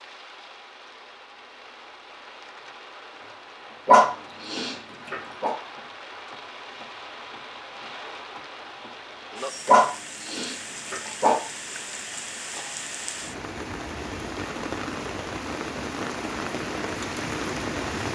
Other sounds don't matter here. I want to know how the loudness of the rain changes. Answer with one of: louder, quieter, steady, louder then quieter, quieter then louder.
louder.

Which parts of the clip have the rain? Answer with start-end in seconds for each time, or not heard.
0.0-18.0.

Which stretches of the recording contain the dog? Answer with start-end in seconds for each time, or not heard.
3.9-5.5, 9.7-11.4.